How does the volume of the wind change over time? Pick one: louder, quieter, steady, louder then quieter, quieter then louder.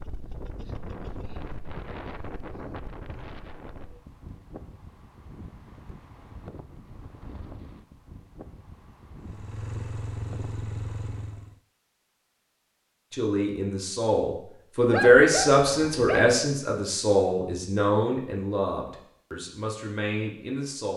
quieter.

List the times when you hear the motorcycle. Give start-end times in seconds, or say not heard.
9.2-11.6.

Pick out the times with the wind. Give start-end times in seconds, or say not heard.
0.0-11.4.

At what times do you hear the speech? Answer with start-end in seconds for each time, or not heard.
13.1-20.9.